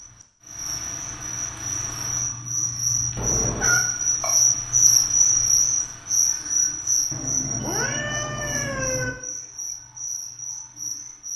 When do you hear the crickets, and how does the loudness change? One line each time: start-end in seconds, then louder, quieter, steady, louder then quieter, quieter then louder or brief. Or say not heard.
0.0-11.3 louder then quieter.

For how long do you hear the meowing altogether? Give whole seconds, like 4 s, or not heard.
3 s.